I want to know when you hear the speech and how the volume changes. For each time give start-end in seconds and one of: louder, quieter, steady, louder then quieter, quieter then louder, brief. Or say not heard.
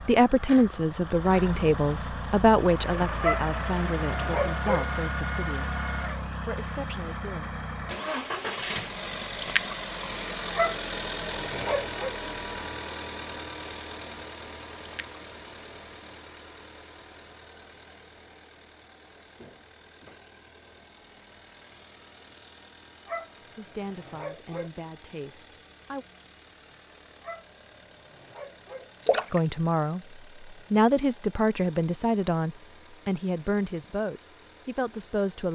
0.1-7.6 quieter
23.4-26.1 brief
29.3-35.5 quieter.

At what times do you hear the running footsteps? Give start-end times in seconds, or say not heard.
not heard.